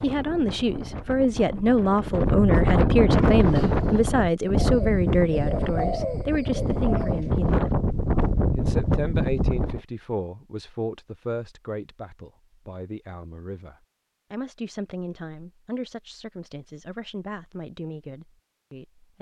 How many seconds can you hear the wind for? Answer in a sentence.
You can hear the wind for 10 seconds altogether.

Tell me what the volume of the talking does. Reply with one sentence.
The volume of the talking goes down.